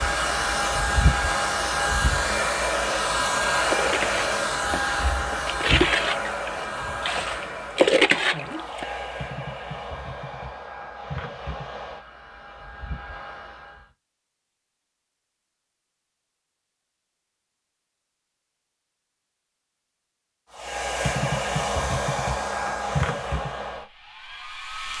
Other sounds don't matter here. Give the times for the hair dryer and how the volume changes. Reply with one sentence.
You can hear the hair dryer from 0.0 to 13.9 s, getting quieter; and from 20.5 to 24.9 s, getting quieter.